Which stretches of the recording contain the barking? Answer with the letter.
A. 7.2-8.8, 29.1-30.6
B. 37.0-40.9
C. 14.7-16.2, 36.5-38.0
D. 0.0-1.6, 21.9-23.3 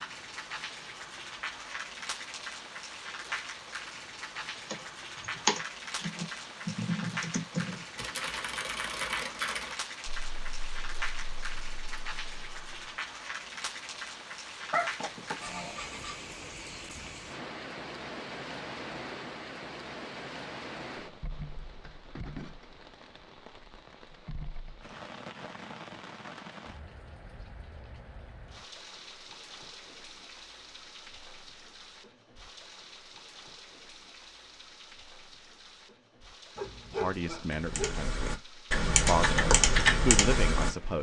C.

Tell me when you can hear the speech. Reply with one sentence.
The speech can be heard from 37.0 to 40.9 s.